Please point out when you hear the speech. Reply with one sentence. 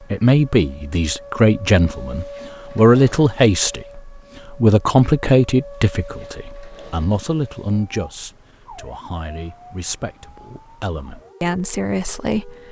The speech can be heard from 0.1 to 12.6 s.